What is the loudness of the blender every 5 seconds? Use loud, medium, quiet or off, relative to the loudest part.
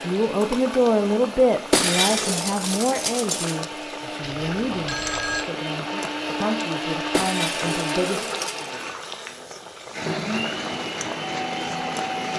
medium, loud, loud.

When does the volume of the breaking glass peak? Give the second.
2 s.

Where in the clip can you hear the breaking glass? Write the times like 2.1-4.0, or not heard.
1.7-3.6, 7.1-8.7.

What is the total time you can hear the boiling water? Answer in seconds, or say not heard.
12 s.